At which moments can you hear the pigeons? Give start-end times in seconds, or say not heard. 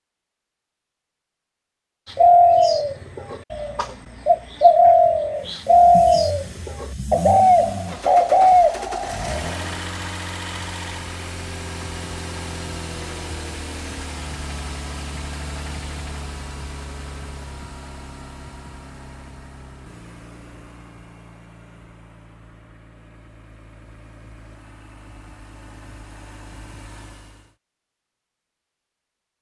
2.1-9.7.